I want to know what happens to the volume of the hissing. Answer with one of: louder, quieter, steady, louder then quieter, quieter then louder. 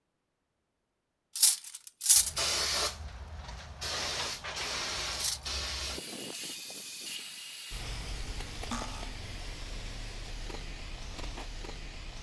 quieter.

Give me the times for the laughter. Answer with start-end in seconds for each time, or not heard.
not heard.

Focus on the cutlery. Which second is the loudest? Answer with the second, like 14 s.
2 s.